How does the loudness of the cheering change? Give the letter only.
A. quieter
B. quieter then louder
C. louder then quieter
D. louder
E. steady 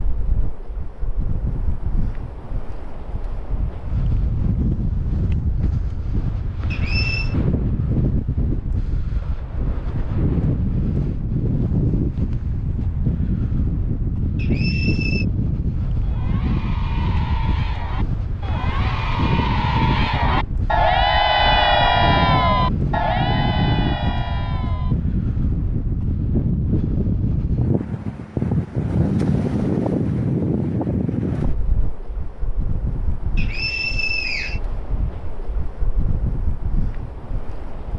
C.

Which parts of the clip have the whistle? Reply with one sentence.
The whistle can be heard from 6.7 to 7.3 s, from 14.3 to 15.2 s and from 33.4 to 34.6 s.